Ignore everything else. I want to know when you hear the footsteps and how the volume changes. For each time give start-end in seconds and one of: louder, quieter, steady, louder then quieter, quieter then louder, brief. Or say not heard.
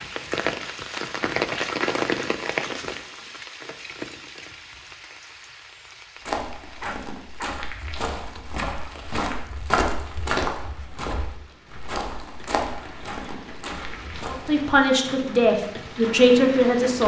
6.2-14.7 louder then quieter.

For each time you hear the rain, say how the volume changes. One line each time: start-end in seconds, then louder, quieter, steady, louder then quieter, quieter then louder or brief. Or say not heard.
0.0-17.0 quieter then louder.